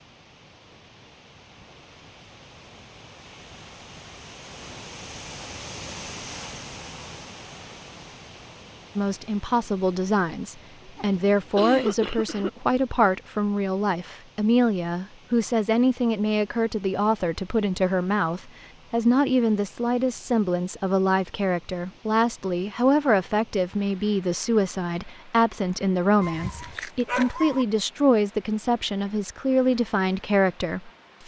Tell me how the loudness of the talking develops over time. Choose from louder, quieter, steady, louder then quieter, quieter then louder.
steady.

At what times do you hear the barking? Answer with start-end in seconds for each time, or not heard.
26.2-27.6.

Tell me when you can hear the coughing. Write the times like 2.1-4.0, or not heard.
10.9-12.5.